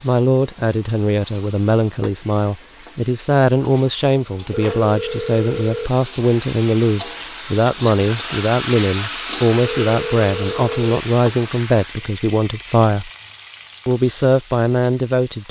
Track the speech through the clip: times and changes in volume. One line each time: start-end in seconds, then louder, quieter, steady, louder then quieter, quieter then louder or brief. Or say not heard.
0.0-13.1 steady
13.8-15.4 brief.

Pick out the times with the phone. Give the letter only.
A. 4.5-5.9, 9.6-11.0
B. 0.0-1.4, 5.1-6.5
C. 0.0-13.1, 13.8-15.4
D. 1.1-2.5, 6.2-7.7
A.